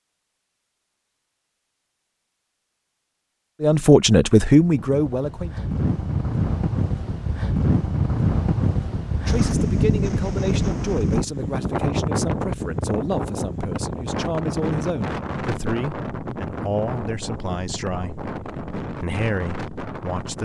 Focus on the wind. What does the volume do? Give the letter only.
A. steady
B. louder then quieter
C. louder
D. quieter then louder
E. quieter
E.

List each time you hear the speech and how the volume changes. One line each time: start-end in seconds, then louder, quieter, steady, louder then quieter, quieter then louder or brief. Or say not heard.
3.6-5.5 brief
9.2-20.4 steady.